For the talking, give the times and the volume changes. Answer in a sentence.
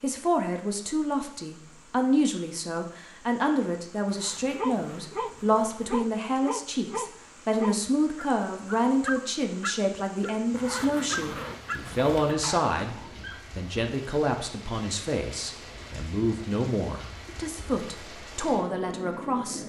The talking can be heard from 0.0 to 19.6 s, at a steady volume.